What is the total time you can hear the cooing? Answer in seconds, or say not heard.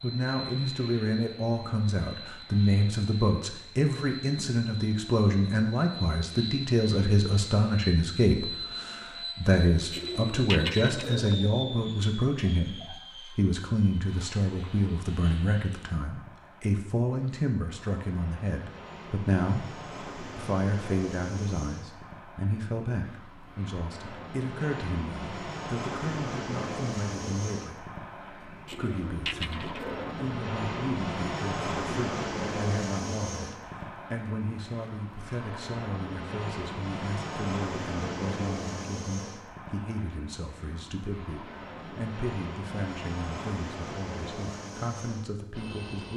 3 s.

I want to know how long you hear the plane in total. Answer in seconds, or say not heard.
46 s.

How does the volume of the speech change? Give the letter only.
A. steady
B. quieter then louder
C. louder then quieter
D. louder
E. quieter
E.